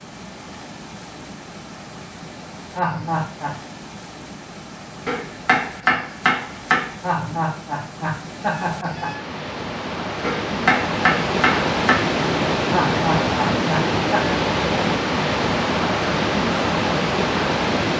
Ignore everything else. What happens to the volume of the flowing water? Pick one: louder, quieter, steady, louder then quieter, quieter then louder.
louder.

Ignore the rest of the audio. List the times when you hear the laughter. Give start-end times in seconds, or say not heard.
2.8-3.6, 7.0-9.2, 12.7-14.4.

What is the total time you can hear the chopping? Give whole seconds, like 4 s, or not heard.
4 s.